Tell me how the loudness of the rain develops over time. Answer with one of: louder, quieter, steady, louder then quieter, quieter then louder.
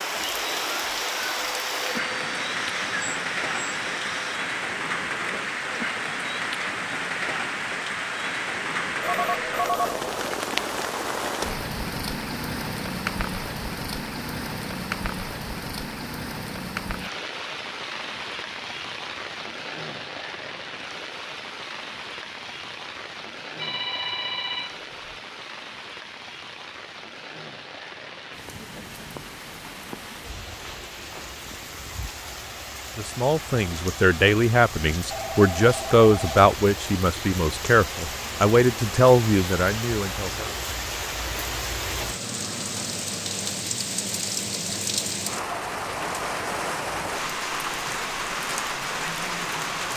quieter then louder.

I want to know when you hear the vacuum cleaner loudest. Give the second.
1 s.